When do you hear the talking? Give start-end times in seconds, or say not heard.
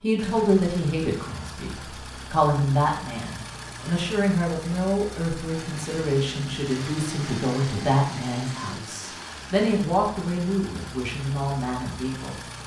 0.0-12.4.